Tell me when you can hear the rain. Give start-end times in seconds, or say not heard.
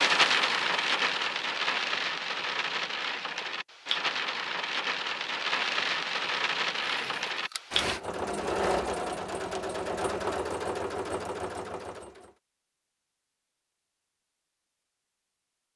0.0-8.0.